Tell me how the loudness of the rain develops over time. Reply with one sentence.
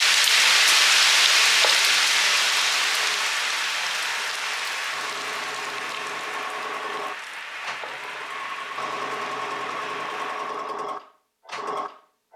The loudness of the rain goes down.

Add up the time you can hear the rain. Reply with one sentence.
You can hear the rain for 11 seconds altogether.